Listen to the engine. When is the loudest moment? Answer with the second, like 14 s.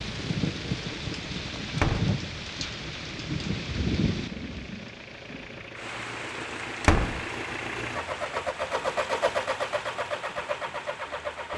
9 s.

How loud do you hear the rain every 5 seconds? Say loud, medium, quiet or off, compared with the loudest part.
loud, medium, quiet.